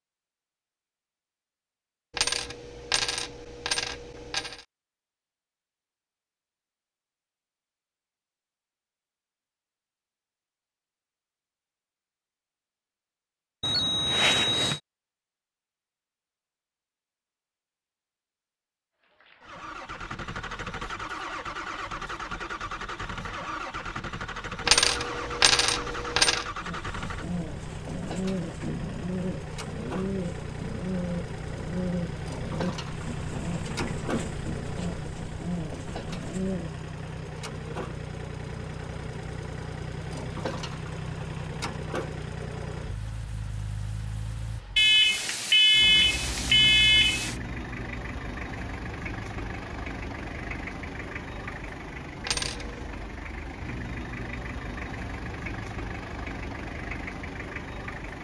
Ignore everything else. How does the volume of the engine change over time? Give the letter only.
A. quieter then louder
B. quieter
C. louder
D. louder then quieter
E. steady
E.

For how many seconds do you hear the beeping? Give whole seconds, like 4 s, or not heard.
4 s.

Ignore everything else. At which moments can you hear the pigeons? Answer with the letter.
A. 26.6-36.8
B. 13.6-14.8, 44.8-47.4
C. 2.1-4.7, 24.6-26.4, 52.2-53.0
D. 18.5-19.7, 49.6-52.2
A.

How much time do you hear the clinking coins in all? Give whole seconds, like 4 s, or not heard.
5 s.